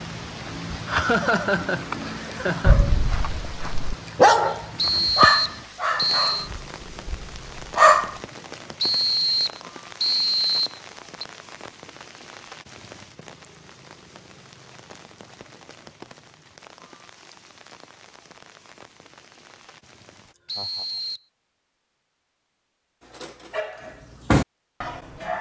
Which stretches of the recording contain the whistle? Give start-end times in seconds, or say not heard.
4.8-6.5, 8.8-11.2, 20.4-21.2.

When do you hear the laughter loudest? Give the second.
1 s.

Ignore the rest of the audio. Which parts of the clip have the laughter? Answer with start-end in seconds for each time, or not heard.
0.8-2.8, 20.6-21.0.